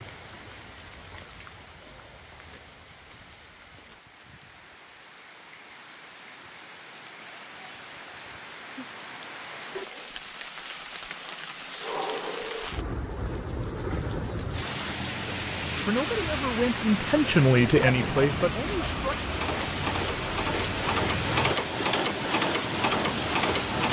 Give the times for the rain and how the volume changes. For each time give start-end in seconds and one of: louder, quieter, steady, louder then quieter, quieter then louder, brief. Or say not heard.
0.0-23.8 louder.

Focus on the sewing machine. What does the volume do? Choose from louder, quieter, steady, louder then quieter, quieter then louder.
louder.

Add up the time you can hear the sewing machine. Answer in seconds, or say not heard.
6 s.